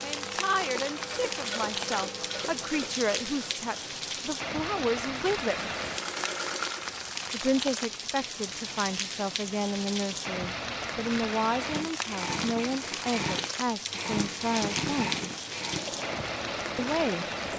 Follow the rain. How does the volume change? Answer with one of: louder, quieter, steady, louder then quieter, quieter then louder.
steady.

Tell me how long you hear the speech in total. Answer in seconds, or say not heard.
14 s.